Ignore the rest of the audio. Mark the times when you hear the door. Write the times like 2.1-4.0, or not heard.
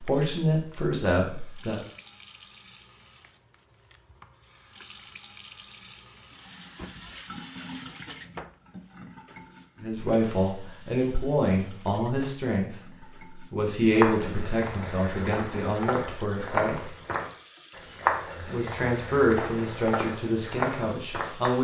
6.3-7.2.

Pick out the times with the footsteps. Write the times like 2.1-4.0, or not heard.
13.8-21.5.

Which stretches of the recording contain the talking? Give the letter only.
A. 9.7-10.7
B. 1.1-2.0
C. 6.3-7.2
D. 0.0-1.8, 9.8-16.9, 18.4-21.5
D.